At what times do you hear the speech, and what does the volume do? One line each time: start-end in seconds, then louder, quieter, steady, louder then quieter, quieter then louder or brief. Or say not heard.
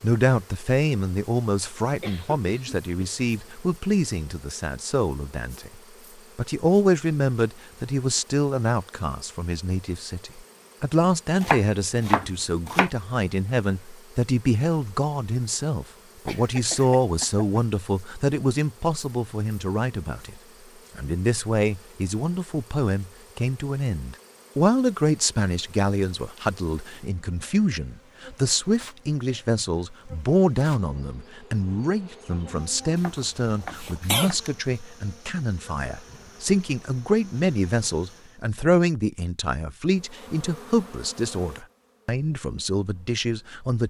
0.0-43.8 steady.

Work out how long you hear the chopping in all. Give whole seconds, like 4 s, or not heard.
4 s.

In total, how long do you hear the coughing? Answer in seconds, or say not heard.
4 s.